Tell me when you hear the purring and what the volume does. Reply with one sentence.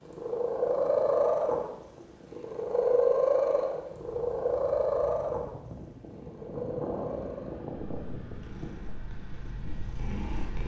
You can hear the purring from 0.1 to 10.6 s, getting quieter.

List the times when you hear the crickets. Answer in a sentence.
The crickets can't be heard in this clip.